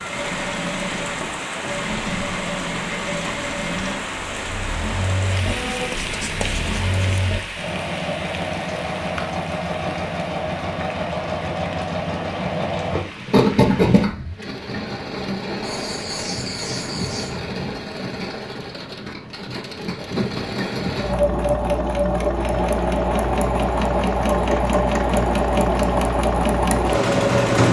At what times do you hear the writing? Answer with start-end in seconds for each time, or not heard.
5.5-7.2, 15.6-17.4.